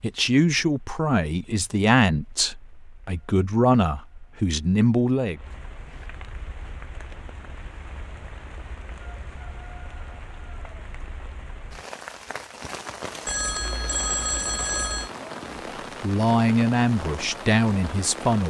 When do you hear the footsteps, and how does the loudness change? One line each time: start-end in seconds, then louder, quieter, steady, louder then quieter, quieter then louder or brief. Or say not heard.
not heard.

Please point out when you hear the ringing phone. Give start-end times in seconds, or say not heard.
13.2-15.1.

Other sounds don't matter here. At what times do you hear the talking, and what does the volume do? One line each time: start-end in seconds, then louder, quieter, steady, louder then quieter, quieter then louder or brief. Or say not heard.
0.0-5.4 quieter then louder
16.0-18.4 brief.